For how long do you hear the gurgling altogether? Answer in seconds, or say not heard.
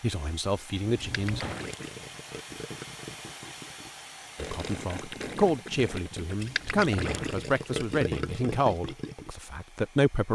8 s.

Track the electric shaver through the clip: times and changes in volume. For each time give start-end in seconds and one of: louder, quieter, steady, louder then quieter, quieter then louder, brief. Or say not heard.
not heard.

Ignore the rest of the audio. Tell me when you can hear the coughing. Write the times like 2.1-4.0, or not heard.
not heard.